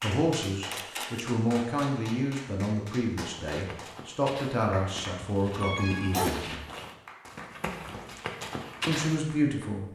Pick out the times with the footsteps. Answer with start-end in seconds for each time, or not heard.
3.5-9.2.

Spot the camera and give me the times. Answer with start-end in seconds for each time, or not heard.
0.7-1.2.